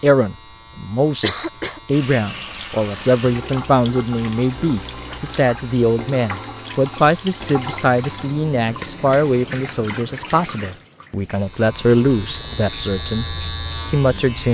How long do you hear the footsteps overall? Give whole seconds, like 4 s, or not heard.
not heard.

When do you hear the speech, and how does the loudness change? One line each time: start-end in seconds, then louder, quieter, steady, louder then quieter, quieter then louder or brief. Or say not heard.
0.0-14.4 steady.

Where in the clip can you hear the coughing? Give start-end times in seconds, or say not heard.
1.2-1.8.